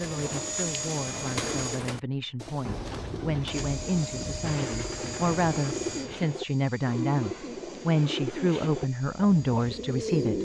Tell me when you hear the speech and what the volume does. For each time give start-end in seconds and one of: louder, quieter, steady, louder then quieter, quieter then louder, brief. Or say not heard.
0.0-10.3 louder.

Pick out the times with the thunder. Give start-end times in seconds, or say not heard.
2.6-6.2.